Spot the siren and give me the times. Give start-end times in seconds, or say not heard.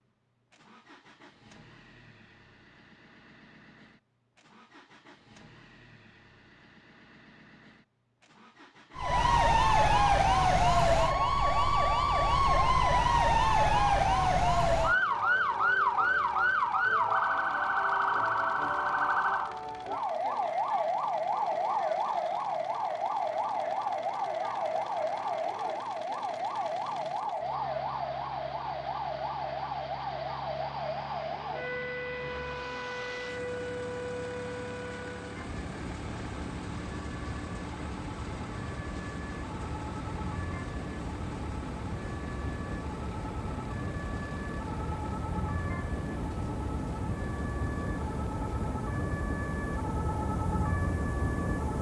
8.9-51.7.